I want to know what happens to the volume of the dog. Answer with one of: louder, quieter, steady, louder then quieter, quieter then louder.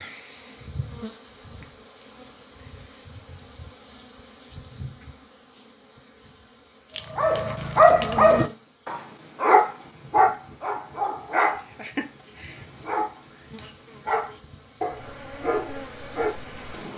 quieter.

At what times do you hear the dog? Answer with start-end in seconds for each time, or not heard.
7.0-16.5.